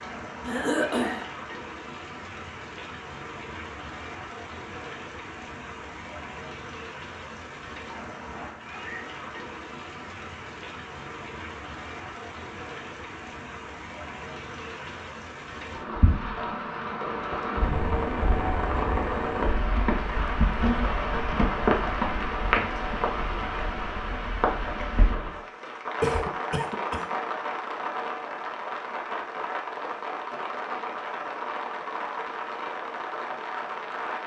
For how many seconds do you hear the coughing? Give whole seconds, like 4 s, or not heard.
2 s.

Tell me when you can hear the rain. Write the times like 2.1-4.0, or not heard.
0.0-34.2.